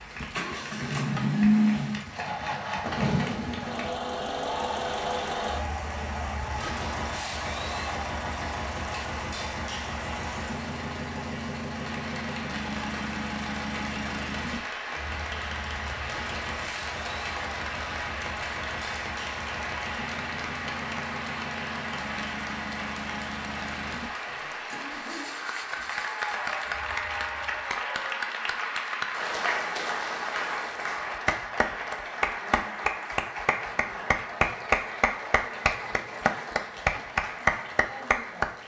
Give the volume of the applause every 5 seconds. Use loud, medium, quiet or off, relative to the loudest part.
quiet, medium, medium, medium, medium, loud, loud, loud.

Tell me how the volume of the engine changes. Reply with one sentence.
The loudness of the engine goes down.